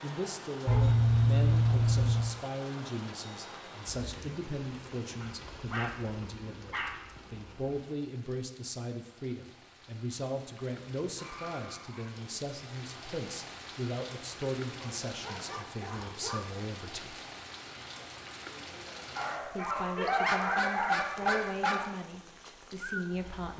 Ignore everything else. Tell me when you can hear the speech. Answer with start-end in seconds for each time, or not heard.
0.0-17.2, 19.4-23.5.